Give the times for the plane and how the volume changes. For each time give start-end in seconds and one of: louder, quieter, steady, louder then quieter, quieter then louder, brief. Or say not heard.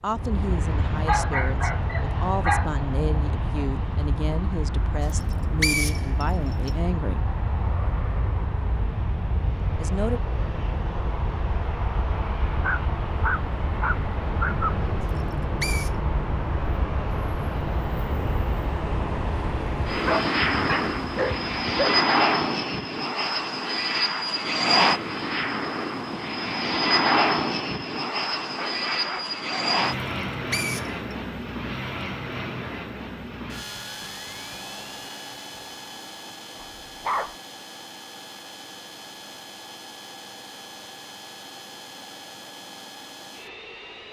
0.1-44.0 louder then quieter.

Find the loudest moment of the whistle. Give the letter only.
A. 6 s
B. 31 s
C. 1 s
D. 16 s
A.